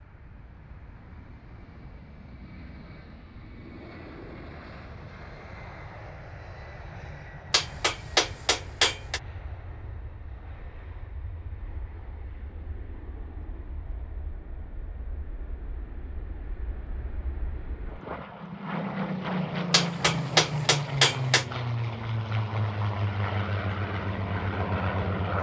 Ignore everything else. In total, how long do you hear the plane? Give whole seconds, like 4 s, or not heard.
25 s.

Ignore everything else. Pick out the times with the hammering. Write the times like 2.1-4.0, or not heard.
7.5-9.2, 19.7-21.4.